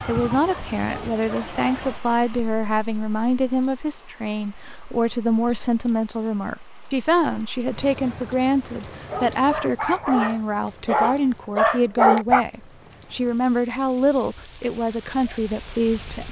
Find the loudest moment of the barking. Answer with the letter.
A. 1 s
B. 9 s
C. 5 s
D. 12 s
D.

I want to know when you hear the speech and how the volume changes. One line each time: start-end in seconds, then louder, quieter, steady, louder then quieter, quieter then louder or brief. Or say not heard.
0.1-16.2 steady.